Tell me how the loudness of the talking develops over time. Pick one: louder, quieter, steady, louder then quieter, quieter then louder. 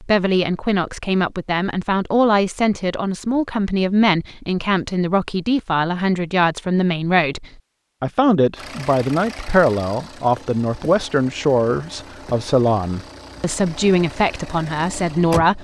steady.